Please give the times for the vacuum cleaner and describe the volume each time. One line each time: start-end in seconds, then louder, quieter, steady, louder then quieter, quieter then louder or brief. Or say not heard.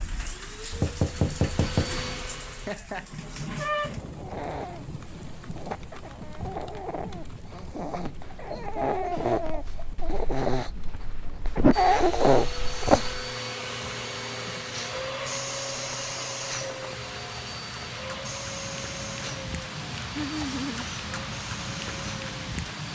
0.1-2.8 brief
11.7-22.9 quieter.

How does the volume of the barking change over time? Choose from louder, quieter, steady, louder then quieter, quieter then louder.
louder.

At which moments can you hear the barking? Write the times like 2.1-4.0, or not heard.
4.2-13.3.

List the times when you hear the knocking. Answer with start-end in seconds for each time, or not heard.
0.7-1.9.